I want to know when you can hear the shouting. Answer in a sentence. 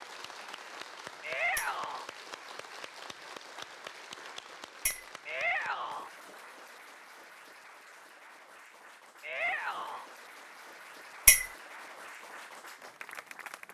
The shouting can be heard from 1.2 to 2.0 s, from 5.2 to 6.1 s and from 9.2 to 10.1 s.